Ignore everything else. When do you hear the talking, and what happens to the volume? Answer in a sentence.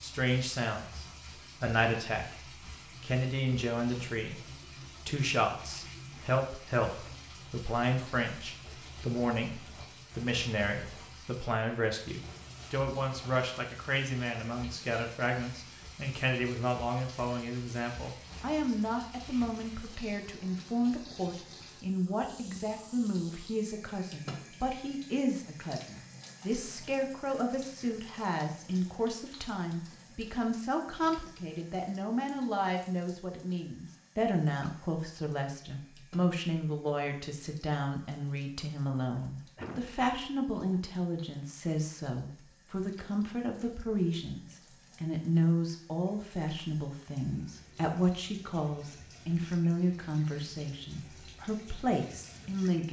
The talking can be heard briefly from 0.0 to 2.4 s; and from 3.0 to 52.8 s, at a steady volume.